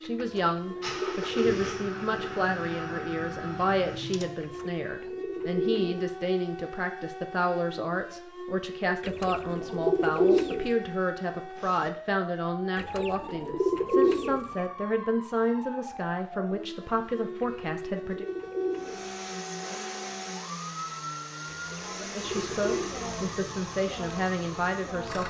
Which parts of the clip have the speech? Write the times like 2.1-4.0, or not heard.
0.0-18.2, 22.0-25.2.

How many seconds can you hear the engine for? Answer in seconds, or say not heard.
11 s.